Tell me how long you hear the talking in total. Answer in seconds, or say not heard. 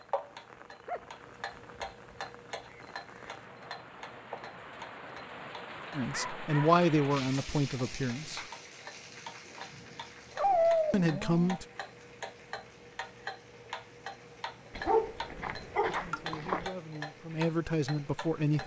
6 s.